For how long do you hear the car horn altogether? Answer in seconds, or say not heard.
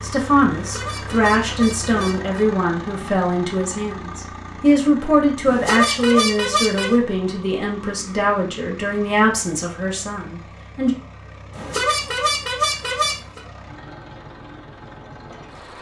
5 s.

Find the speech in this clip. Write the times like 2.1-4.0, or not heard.
0.0-10.9.